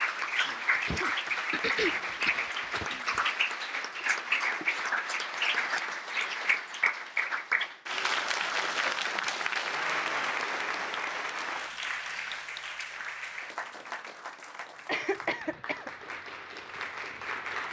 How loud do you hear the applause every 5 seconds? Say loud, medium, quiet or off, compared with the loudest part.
loud, loud, medium, medium.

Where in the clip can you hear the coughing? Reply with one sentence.
The coughing can be heard from 0.8 to 2.9 s and from 14.8 to 16.1 s.